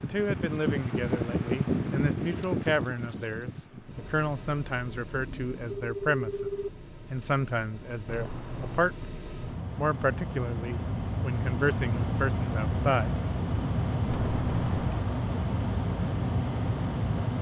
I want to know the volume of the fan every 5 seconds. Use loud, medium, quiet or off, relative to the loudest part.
loud, quiet, loud, loud.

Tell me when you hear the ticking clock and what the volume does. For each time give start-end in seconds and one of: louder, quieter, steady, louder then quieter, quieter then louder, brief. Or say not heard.
not heard.